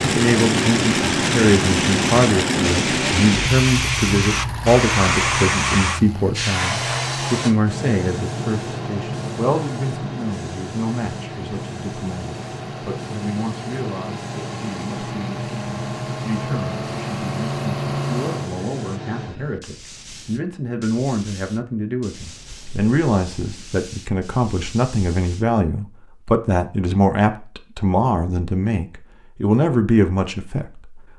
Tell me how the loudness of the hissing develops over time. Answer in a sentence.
The volume of the hissing goes down.